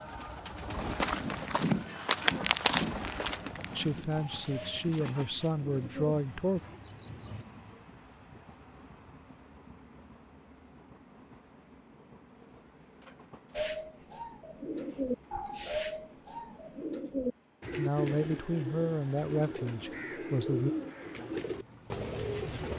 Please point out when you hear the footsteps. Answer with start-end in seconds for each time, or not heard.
0.8-5.7.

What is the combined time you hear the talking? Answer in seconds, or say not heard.
6 s.